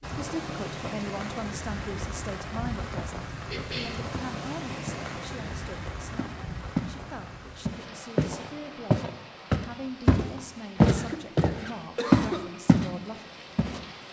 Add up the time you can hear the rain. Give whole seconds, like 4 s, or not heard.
14 s.